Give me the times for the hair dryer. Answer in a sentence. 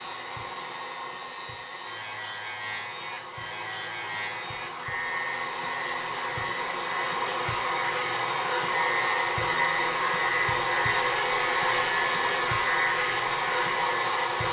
You can hear the hair dryer from 0.0 to 14.4 s.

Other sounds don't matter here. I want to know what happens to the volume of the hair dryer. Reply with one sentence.
The volume of the hair dryer goes up.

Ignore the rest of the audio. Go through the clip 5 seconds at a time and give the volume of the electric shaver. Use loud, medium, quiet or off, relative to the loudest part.
medium, medium, loud.